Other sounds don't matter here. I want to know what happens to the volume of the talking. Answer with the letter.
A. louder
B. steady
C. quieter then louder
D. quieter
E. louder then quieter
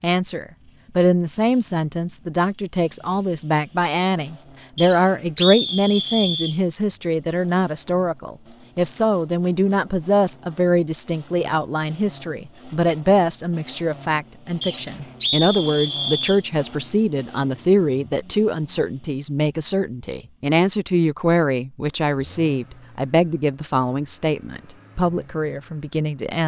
B.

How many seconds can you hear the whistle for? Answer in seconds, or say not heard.
4 s.